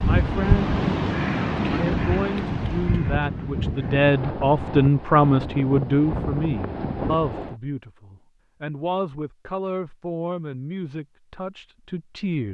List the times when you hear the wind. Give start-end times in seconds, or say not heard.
0.0-7.5.